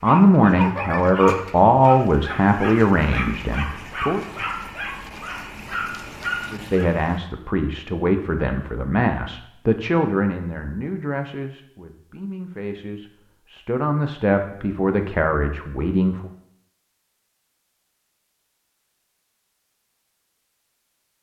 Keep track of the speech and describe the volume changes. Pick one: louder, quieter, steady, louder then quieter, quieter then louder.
quieter then louder.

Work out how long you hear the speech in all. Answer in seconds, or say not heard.
14 s.